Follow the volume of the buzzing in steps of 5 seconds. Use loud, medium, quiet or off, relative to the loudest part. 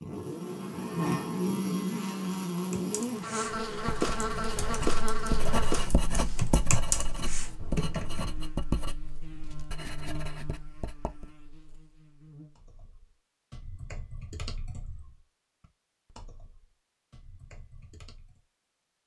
loud, medium, quiet, off.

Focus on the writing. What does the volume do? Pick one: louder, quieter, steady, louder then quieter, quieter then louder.
quieter.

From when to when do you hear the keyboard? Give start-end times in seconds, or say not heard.
2.7-8.4, 12.6-18.4.